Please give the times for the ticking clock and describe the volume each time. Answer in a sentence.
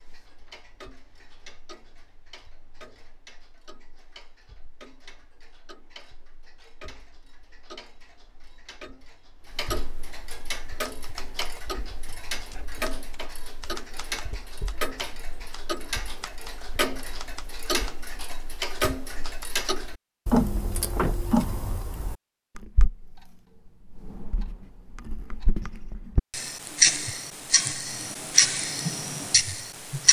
The ticking clock can be heard from 0.0 to 30.0 s, getting louder.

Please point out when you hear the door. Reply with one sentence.
You can hear the door from 20.3 to 21.1 s.